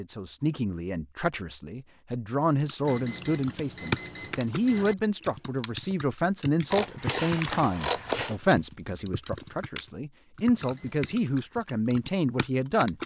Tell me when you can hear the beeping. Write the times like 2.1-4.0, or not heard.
2.9-5.0, 10.6-11.1.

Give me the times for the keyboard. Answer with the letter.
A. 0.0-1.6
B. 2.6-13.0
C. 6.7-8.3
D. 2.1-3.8
B.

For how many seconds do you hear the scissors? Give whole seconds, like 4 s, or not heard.
2 s.